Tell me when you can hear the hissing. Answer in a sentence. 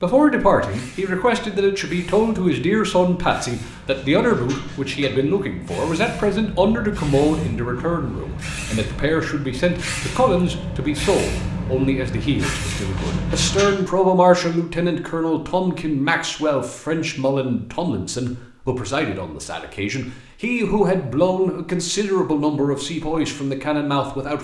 The hissing can be heard from 0.1 to 13.8 s.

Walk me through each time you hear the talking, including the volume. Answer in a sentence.
You can hear the talking from 0.0 to 24.3 s, at a steady volume.